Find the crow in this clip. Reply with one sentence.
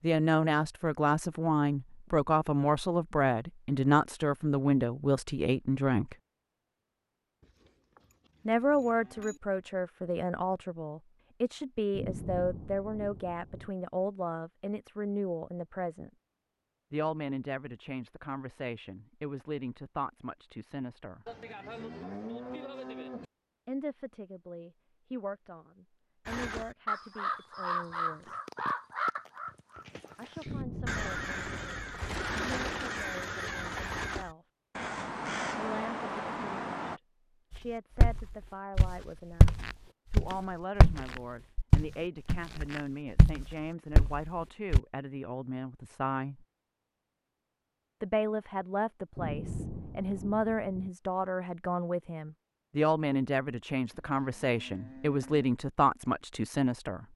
You can hear the crow from 26.2 to 37.0 s.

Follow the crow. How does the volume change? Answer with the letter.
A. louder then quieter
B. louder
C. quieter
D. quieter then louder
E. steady
E.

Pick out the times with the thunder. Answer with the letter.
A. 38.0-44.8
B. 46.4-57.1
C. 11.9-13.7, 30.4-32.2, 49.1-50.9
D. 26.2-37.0
C.